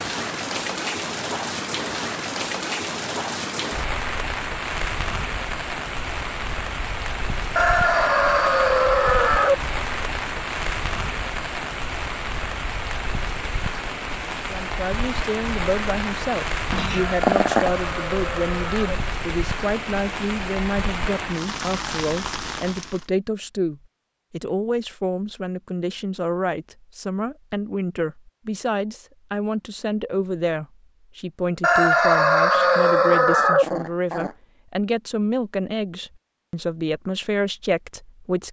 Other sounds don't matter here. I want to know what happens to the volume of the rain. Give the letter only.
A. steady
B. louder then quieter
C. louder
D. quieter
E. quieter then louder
A.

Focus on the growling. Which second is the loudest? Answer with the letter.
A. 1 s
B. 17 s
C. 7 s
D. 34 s
B.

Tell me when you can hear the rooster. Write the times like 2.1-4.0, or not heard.
7.5-9.6, 16.9-18.9, 31.6-33.6.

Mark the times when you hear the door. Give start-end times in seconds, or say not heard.
not heard.